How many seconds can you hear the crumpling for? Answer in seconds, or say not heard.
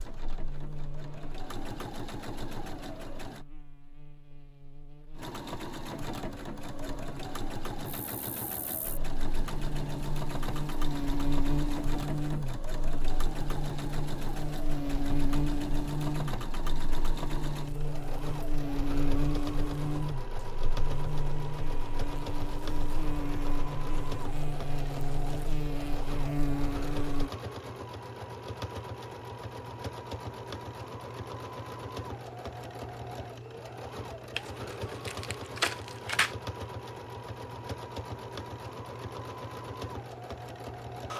2 s.